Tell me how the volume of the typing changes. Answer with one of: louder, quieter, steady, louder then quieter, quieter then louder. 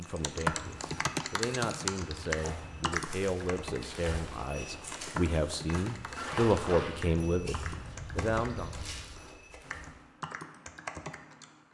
quieter.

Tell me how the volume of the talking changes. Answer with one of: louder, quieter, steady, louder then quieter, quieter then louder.
louder.